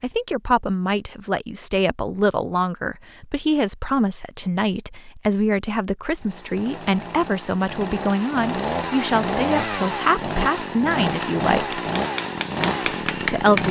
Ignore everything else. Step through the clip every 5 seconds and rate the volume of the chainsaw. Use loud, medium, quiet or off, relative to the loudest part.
off, loud, loud.